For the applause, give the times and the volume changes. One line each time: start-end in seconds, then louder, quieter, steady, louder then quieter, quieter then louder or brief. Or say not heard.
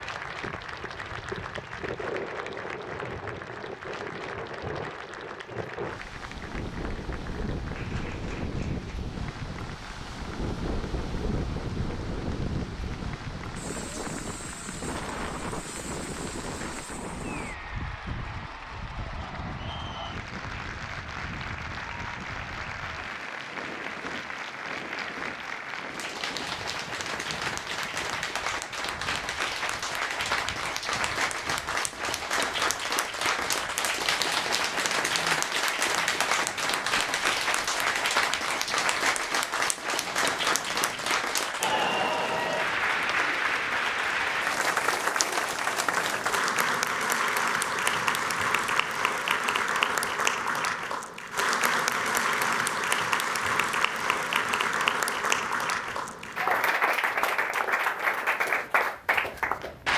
0.0-59.9 louder.